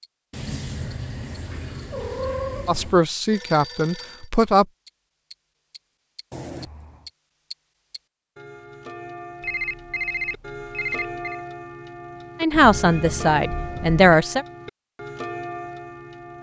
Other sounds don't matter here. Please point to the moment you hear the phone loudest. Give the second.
10 s.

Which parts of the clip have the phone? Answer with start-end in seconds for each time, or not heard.
3.3-4.3, 9.4-11.4.